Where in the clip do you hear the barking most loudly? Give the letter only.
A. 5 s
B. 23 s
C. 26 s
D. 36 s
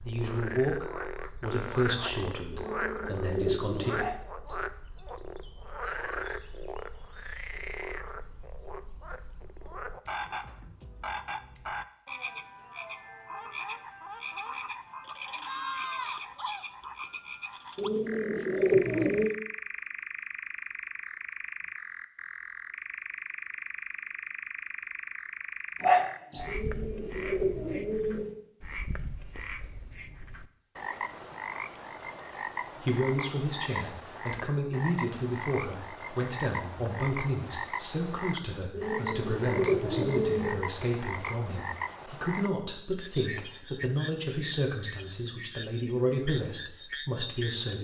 C.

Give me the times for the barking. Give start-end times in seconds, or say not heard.
4.0-4.7, 25.8-26.6.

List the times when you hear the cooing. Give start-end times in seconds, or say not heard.
2.5-4.0, 17.8-19.4, 26.4-28.4, 38.7-40.7.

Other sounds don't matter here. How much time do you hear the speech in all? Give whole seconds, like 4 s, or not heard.
19 s.